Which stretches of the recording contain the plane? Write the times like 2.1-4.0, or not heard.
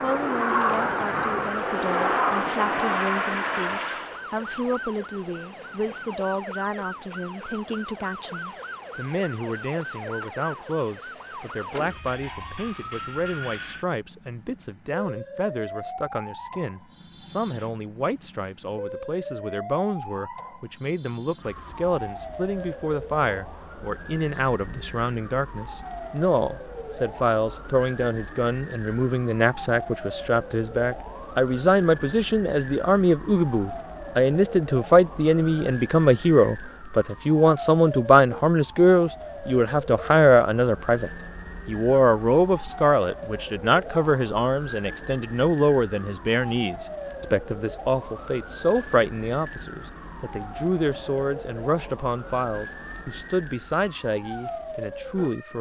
0.0-4.2.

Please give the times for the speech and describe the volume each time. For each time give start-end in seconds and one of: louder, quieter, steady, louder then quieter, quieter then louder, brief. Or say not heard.
0.0-55.5 louder then quieter.